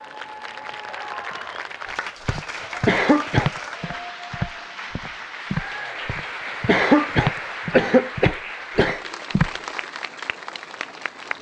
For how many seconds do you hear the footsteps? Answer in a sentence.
You can hear the footsteps for 7 seconds altogether.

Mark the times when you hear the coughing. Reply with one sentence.
The coughing can be heard from 2.9 to 3.5 s and from 6.7 to 9.0 s.